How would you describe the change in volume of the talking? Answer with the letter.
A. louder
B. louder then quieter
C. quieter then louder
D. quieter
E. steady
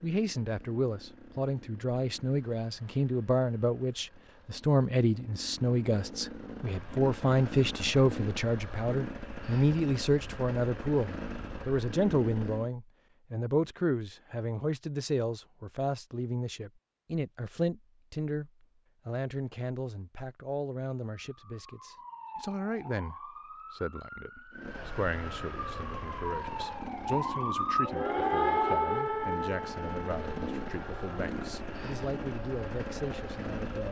D.